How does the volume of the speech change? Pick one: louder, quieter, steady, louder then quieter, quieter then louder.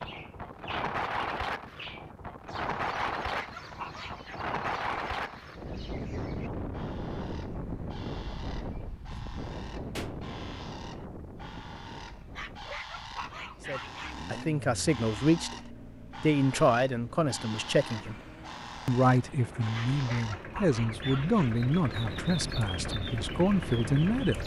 steady.